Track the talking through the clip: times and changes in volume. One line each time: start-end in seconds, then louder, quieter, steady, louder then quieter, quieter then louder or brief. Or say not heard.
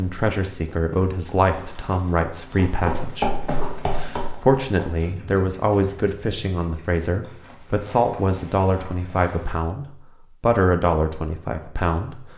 0.0-12.2 steady.